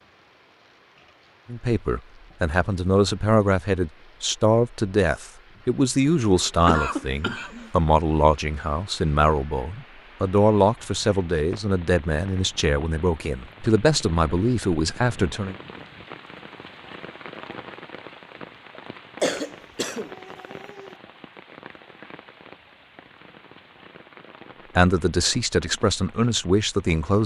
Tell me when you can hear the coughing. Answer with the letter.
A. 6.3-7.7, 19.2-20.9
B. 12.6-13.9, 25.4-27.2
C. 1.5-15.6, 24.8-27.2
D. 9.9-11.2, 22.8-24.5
A.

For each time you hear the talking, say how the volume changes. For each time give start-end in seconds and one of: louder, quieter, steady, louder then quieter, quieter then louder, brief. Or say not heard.
1.5-15.6 steady
24.8-27.2 brief.